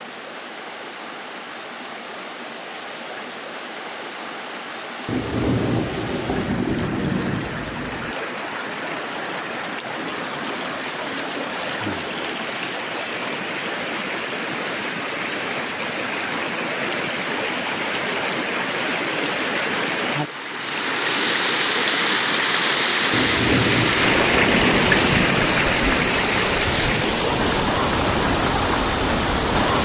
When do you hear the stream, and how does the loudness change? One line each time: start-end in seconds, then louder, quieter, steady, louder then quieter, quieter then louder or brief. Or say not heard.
0.0-29.7 louder.